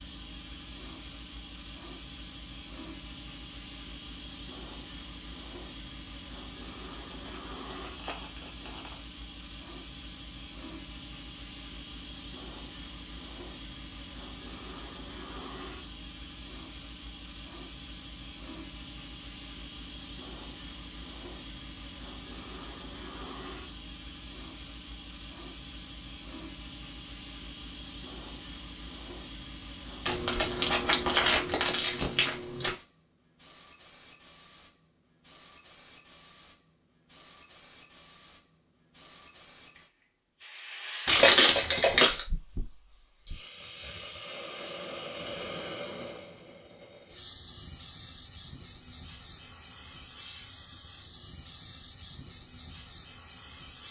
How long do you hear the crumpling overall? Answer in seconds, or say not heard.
6 s.